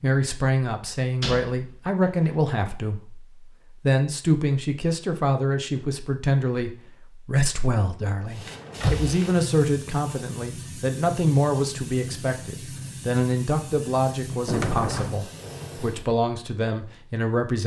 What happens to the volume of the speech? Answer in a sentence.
The loudness of the speech stays about the same.